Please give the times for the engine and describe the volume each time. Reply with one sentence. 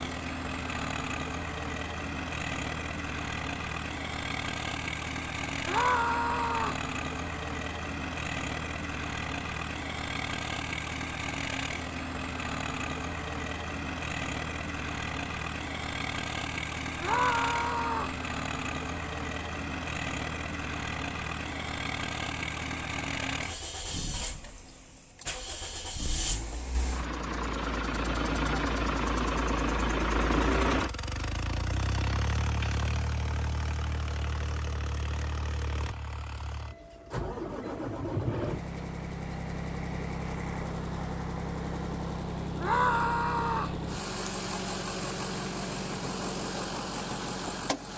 You can hear the engine from 0.0 to 47.9 s, at a steady volume.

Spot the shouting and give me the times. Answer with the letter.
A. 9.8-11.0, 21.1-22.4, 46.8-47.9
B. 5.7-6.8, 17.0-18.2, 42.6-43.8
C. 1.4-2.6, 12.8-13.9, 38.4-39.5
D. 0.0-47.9
B.